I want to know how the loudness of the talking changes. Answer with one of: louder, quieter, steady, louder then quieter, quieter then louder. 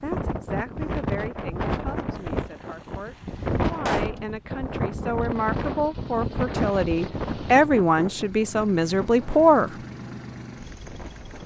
louder.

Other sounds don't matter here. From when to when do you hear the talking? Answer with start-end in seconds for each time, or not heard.
0.0-9.8.